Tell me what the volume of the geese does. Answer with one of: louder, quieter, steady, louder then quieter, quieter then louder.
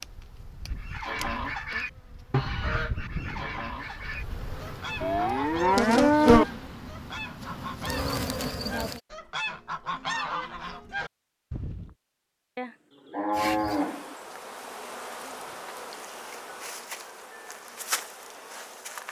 quieter then louder.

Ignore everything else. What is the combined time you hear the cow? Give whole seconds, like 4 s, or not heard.
3 s.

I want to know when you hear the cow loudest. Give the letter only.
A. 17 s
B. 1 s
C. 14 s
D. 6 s
D.